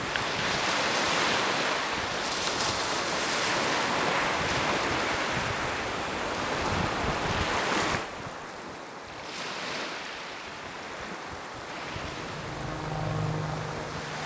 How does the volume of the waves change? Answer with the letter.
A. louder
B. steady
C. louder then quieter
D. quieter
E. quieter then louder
D.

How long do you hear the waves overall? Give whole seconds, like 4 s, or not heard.
14 s.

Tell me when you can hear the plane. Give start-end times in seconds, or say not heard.
11.8-14.2.